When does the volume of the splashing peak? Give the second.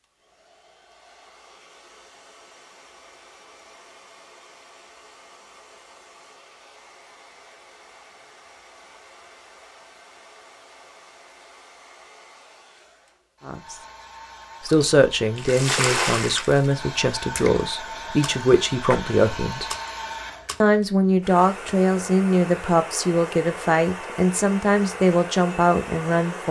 16 s.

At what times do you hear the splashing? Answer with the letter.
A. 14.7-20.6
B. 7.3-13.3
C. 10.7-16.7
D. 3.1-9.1
A.